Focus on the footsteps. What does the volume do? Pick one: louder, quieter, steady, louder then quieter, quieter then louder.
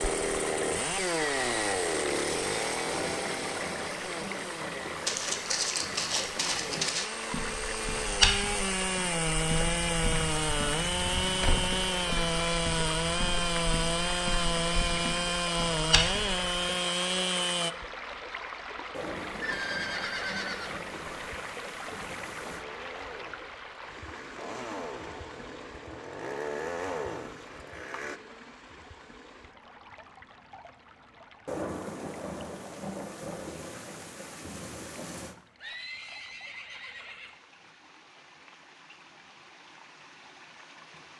quieter then louder.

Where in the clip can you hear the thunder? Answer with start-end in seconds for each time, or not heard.
2.9-6.8, 18.9-22.6, 31.4-35.4.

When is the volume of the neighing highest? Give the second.
20 s.